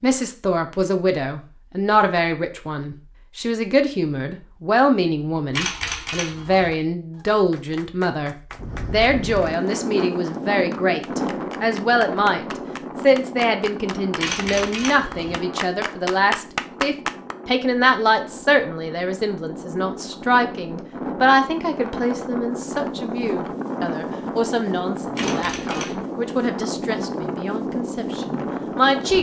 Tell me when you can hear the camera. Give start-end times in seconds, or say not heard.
5.5-6.7, 14.2-15.3, 25.1-25.9.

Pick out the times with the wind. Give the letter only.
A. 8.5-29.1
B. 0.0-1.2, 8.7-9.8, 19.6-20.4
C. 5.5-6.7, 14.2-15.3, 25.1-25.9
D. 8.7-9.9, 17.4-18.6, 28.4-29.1
A.